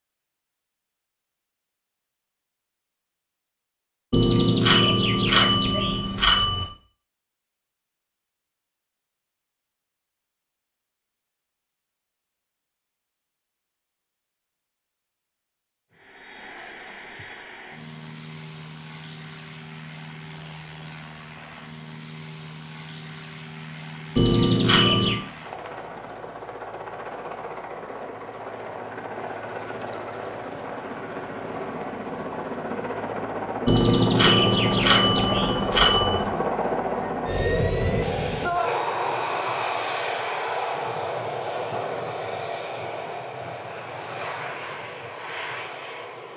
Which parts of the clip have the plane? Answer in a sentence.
You can hear the plane from 15.9 to 46.3 s.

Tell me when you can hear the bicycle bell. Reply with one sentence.
You can hear the bicycle bell from 4.1 to 6.7 s, from 24.1 to 25.2 s and from 33.6 to 36.3 s.